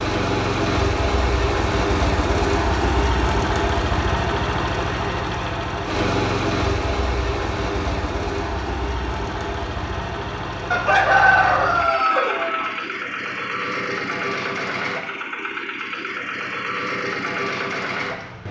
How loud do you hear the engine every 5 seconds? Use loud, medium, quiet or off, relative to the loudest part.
loud, loud, medium, medium.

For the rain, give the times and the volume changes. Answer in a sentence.
You can't hear the rain here.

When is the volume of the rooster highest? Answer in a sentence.
The loudest moment of the rooster is at 11 seconds.